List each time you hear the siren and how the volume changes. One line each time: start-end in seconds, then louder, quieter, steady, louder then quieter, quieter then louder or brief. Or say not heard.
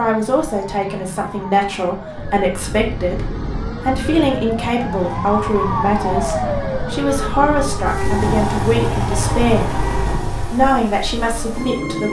0.0-12.0 louder then quieter.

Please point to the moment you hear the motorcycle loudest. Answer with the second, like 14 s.
9 s.